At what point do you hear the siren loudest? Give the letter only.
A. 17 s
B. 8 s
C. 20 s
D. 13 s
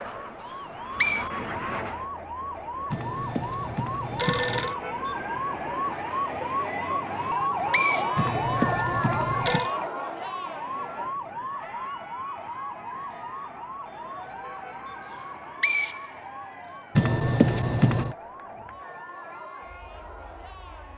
B.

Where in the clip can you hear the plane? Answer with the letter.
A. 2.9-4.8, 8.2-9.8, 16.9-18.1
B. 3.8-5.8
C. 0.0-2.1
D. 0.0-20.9
C.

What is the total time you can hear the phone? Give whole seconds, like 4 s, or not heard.
5 s.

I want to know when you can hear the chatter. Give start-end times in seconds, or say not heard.
0.0-20.9.